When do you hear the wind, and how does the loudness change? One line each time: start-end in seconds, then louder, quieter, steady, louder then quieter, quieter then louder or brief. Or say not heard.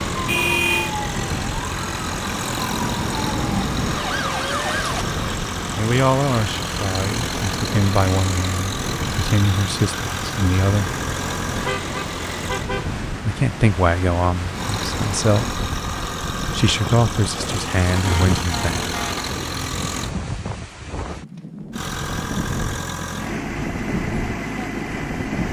0.0-25.4 steady.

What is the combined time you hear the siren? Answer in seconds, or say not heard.
5 s.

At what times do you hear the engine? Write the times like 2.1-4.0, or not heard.
0.0-12.7, 14.5-20.1, 21.7-25.4.